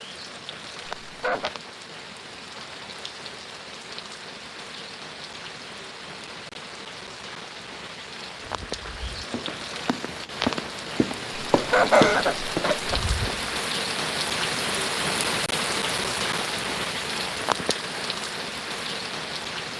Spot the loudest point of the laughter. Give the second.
12 s.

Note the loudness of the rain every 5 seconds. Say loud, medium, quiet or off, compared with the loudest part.
medium, medium, loud, loud.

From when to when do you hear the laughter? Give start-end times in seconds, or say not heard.
1.1-1.5, 11.5-13.0.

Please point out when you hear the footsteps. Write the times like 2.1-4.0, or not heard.
8.7-13.5.